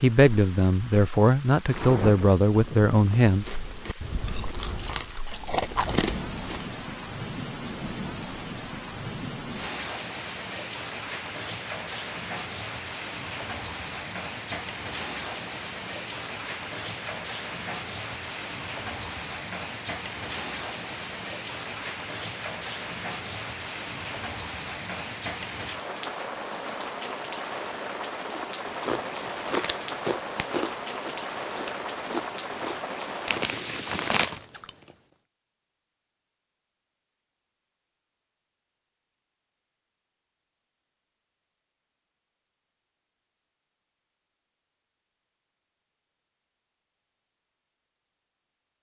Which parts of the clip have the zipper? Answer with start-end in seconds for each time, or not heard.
not heard.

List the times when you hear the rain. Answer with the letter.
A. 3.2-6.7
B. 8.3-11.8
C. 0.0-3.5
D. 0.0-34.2
D.